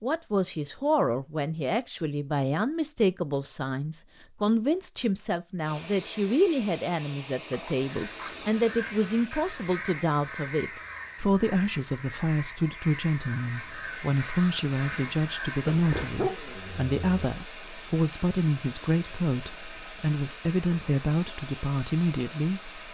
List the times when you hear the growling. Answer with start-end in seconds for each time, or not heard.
7.5-8.6, 15.7-17.4.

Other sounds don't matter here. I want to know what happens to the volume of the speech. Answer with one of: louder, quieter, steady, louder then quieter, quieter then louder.
steady.